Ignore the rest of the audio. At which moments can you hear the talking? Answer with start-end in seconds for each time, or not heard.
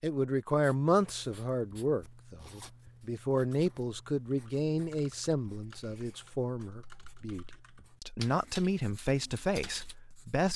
0.0-10.5.